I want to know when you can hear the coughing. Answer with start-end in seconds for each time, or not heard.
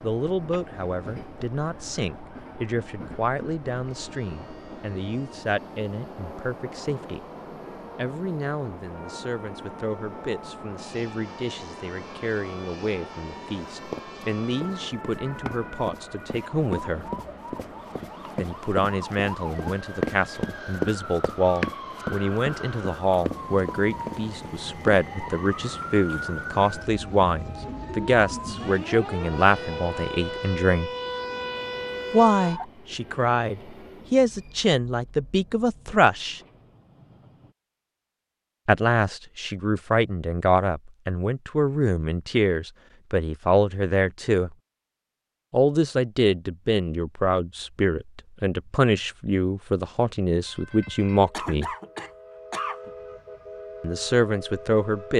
51.3-52.9.